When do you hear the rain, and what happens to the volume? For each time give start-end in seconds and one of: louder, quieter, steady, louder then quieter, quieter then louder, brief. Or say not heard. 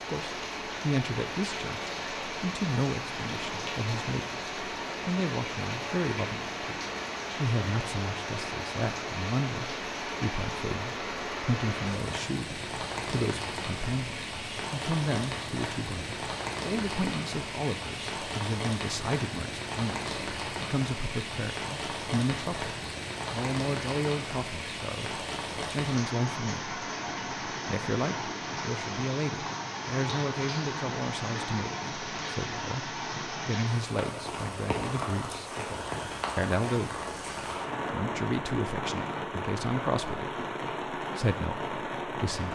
0.0-42.4 steady.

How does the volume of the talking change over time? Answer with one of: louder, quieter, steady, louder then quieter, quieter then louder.
steady.